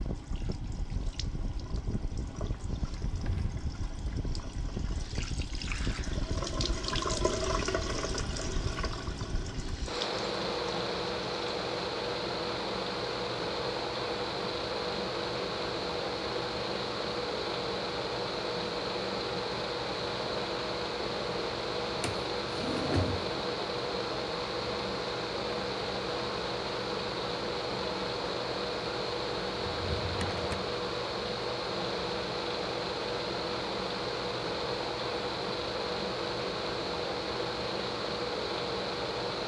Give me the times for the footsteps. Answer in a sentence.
You can't hear the footsteps here.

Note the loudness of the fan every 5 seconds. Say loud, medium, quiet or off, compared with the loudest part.
medium, medium, loud, loud, loud, loud, loud, loud.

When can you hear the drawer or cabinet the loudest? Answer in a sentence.
The volume of the drawer or cabinet peaks at 23 seconds.